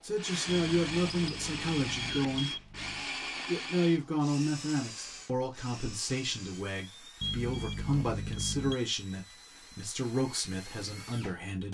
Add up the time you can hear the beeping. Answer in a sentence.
You can hear the beeping for 4 seconds altogether.